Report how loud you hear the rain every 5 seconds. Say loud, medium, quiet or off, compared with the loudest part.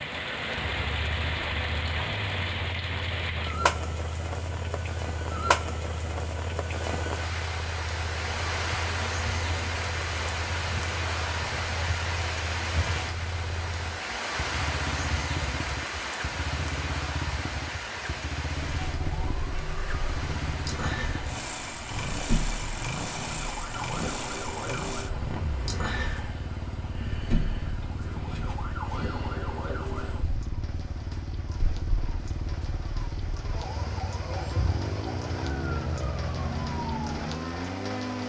loud, loud, loud, loud, medium, quiet, quiet, medium.